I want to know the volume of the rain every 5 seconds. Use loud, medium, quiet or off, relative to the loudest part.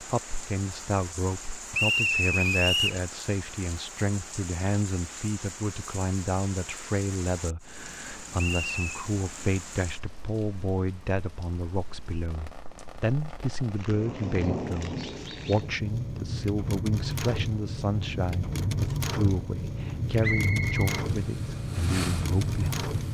medium, medium, medium, loud, loud.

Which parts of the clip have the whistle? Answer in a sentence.
The whistle can be heard from 1.7 to 3.0 s, from 8.4 to 8.8 s and from 20.2 to 21.0 s.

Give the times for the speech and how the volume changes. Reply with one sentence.
The speech can be heard from 0.0 to 22.9 s, at a steady volume.